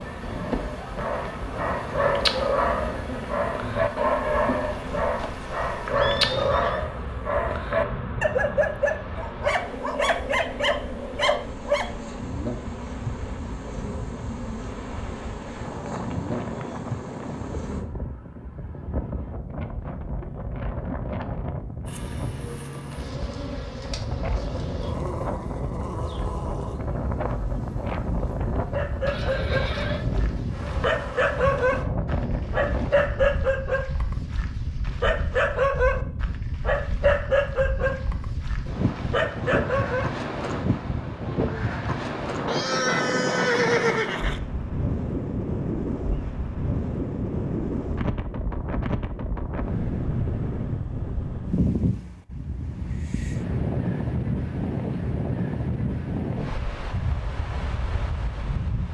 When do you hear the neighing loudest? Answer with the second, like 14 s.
44 s.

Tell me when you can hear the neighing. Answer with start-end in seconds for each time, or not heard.
4.7-6.8, 29.1-30.1, 42.5-44.4.